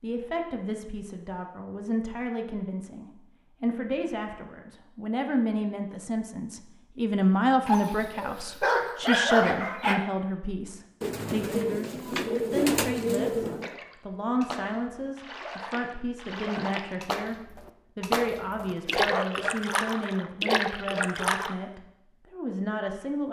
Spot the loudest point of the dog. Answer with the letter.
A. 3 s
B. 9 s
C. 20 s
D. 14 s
B.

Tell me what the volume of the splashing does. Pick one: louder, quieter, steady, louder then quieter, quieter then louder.
louder.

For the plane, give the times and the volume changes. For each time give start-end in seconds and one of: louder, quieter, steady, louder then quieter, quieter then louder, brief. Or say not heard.
not heard.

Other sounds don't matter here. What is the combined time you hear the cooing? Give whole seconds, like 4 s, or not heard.
3 s.